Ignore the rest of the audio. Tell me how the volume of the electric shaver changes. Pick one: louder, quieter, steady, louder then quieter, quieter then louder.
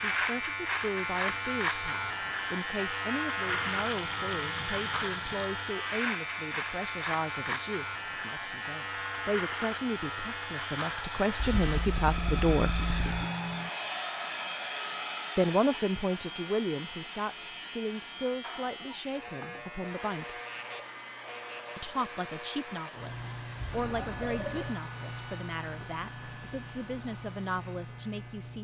quieter.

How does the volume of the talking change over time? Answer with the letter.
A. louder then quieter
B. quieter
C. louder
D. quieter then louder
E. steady
A.